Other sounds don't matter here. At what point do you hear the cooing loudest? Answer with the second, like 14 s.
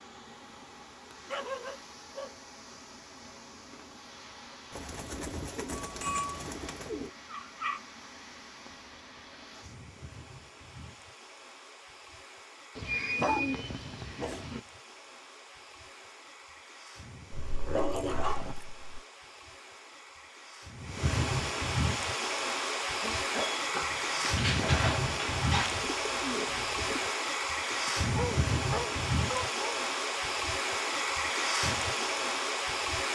13 s.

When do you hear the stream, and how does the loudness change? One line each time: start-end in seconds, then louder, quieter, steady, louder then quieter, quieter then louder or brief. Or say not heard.
0.0-33.1 louder.